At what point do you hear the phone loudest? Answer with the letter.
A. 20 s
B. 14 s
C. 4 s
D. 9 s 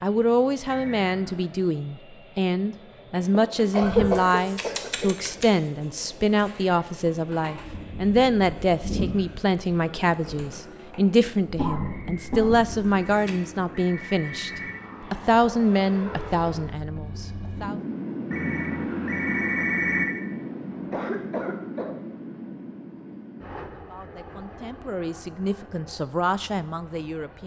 A.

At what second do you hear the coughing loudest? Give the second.
4 s.